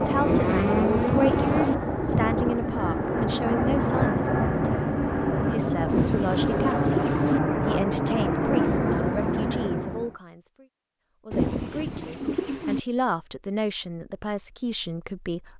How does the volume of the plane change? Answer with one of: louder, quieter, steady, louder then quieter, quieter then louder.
steady.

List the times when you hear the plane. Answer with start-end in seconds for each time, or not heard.
0.0-10.2.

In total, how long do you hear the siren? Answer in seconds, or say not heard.
2 s.